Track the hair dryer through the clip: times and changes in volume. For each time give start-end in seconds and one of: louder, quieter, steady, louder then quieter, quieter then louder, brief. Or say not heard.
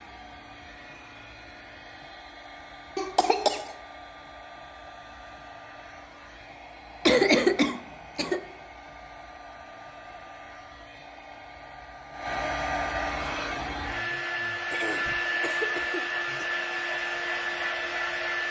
0.0-18.4 louder.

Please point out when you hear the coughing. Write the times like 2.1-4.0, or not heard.
3.0-3.7, 7.0-8.4, 14.7-16.4.